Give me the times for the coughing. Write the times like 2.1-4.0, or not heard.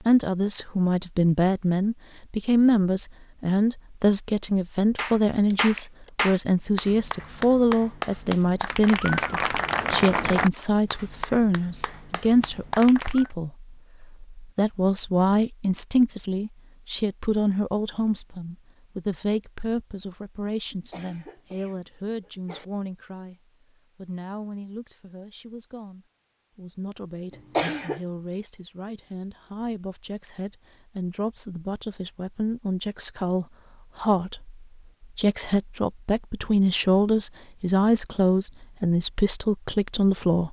5.3-6.1, 20.7-22.6, 27.3-28.0.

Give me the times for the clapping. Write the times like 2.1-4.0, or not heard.
5.0-13.3.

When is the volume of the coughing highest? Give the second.
28 s.